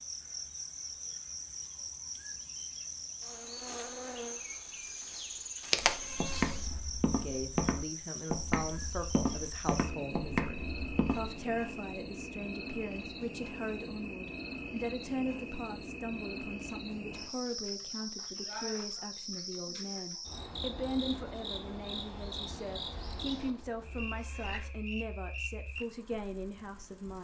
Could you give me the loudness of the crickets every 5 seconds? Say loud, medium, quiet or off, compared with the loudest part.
loud, loud, loud, loud, loud, medium.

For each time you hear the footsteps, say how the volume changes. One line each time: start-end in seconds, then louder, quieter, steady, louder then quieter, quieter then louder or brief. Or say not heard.
5.6-11.3 steady.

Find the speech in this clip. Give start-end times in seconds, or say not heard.
7.2-27.1.